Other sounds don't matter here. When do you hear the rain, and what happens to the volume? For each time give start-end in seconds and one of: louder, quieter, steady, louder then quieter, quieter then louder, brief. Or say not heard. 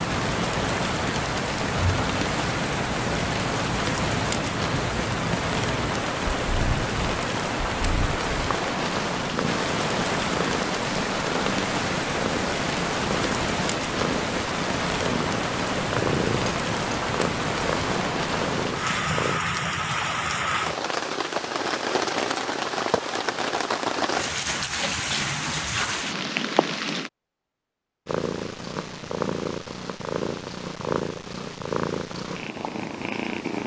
0.0-27.1 steady.